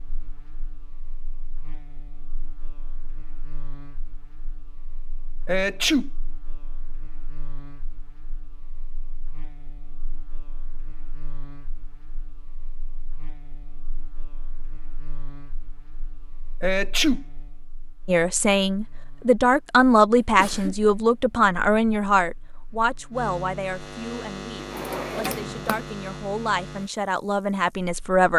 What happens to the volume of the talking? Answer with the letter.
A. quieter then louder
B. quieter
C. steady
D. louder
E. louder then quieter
A.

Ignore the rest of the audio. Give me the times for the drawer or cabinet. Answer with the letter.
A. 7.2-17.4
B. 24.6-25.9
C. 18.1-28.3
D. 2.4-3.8
B.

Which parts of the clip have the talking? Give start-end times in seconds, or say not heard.
18.1-28.3.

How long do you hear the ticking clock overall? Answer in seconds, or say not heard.
not heard.